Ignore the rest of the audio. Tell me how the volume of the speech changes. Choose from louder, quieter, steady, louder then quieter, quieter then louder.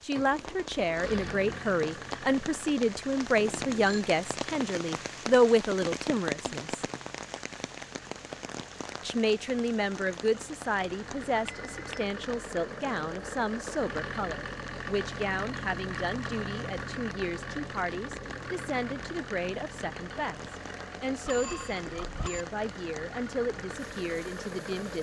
quieter.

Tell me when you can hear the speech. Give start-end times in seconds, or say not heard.
0.0-6.8, 9.0-24.9.